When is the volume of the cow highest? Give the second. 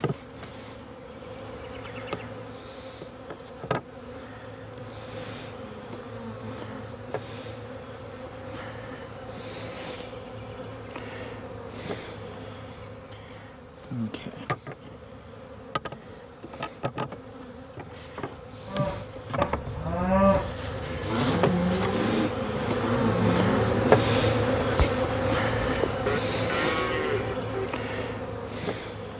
20 s.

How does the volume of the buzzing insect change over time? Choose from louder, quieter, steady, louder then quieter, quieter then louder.
louder.